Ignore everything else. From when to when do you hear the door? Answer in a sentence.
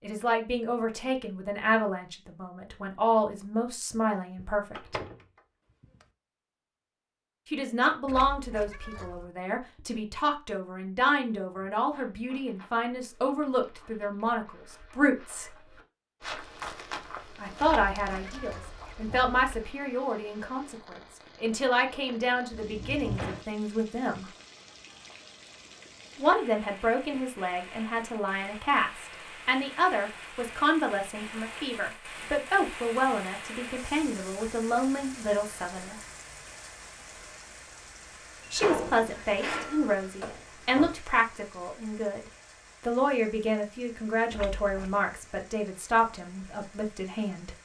The door can be heard from 4.3 to 5.2 s, from 22.5 to 23.4 s and from 38.4 to 41.0 s.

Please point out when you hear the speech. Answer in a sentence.
You can hear the speech from 0.0 to 5.0 s, from 7.5 to 15.5 s, from 17.4 to 24.2 s, from 26.1 to 36.0 s and from 38.5 to 47.6 s.